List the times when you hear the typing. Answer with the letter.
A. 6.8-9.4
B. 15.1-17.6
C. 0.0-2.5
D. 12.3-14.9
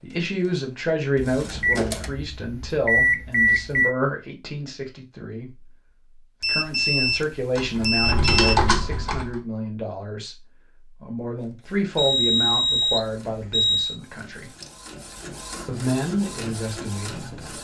A.